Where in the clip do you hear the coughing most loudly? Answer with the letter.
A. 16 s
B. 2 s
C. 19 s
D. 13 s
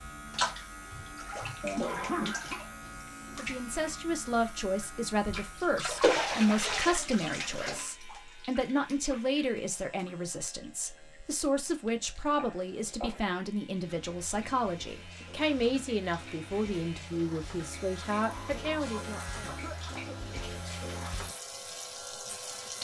B.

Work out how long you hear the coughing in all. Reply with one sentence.
The coughing can be heard for 4 seconds in total.